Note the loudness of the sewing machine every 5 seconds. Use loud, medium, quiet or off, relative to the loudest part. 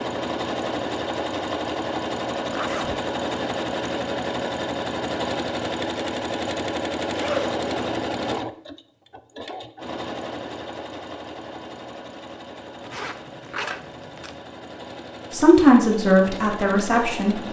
loud, loud, medium, medium.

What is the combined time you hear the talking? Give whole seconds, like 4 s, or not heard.
2 s.